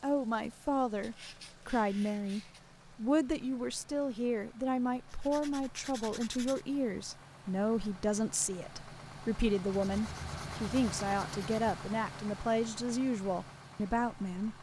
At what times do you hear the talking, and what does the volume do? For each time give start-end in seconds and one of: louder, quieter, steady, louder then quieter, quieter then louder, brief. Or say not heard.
0.0-14.5 steady.